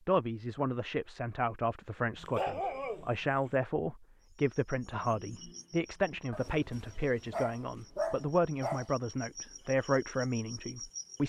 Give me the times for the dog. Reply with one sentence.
You can hear the dog from 2.1 to 3.5 s and from 6.3 to 8.9 s.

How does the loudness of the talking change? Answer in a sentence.
The loudness of the talking stays about the same.